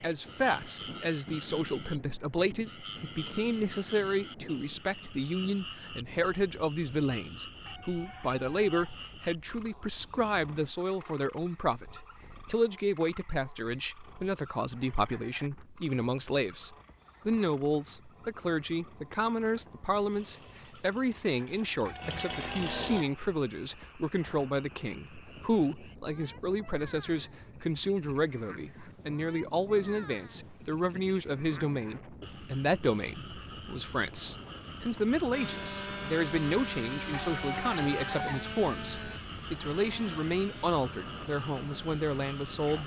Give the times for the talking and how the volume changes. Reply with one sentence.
You can hear the talking from 0.0 to 42.8 s, at a steady volume.